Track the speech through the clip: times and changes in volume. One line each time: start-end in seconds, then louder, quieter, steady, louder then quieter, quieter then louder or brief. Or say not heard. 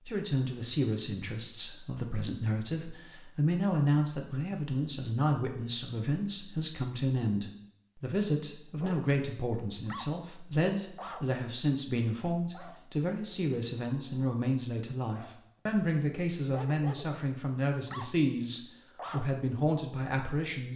0.1-20.7 steady.